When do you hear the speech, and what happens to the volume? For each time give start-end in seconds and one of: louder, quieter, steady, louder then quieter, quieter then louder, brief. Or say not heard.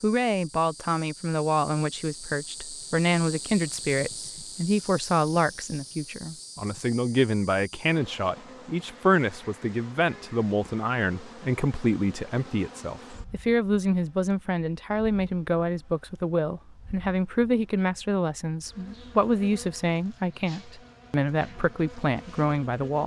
0.0-23.0 steady.